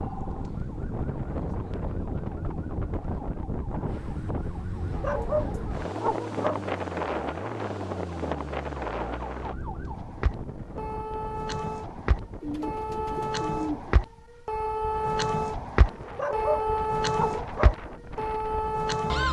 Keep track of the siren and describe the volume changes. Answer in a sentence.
The loudness of the siren goes up.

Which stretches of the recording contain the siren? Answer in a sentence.
You can hear the siren from 0.0 to 19.2 s.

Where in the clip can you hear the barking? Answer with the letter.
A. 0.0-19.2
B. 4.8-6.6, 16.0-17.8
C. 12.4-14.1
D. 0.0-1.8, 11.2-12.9
B.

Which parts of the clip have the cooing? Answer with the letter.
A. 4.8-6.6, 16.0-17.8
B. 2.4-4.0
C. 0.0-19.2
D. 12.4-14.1
D.